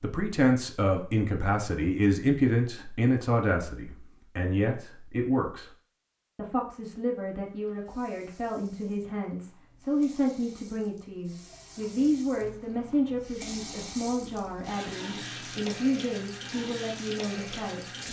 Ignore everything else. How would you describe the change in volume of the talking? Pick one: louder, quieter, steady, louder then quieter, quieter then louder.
quieter.